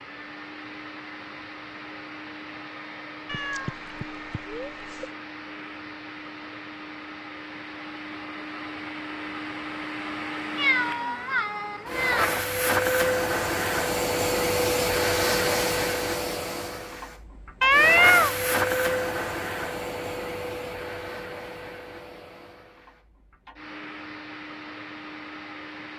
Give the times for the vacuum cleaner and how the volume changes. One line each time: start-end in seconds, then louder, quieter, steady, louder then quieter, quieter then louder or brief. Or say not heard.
0.0-25.9 louder then quieter.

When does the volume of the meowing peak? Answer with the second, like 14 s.
18 s.